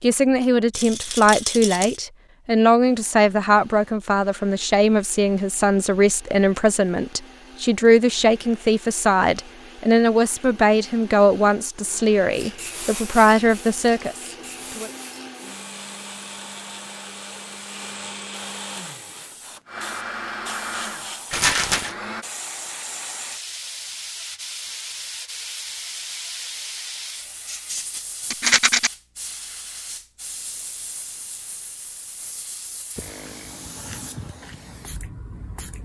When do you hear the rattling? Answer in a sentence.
You can hear the rattling from 0.7 to 2.0 s, from 21.3 to 21.9 s and from 28.3 to 28.9 s.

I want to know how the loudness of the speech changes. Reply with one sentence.
The loudness of the speech stays about the same.